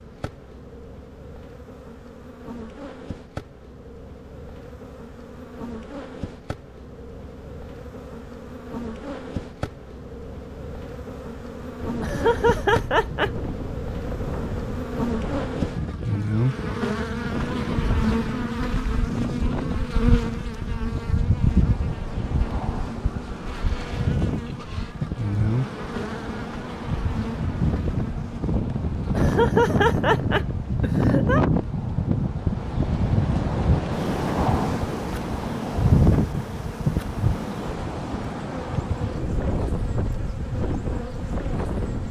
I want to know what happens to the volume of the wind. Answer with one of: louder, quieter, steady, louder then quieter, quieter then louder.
louder.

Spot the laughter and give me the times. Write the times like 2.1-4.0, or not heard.
12.0-13.3, 29.1-31.4.